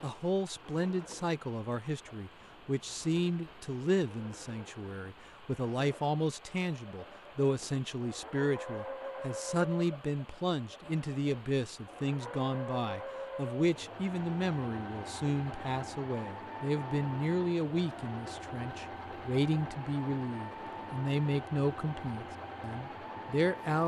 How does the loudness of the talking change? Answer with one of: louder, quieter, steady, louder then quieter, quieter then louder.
steady.